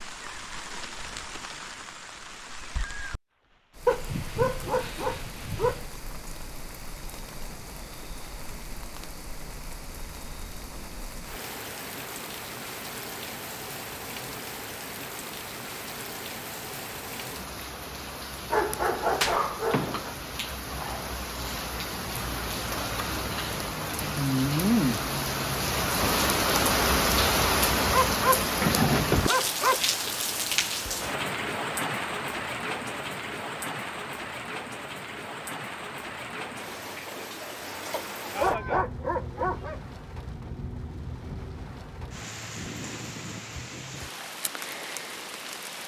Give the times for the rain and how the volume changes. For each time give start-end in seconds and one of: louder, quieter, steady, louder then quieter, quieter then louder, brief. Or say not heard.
0.0-45.8 louder then quieter.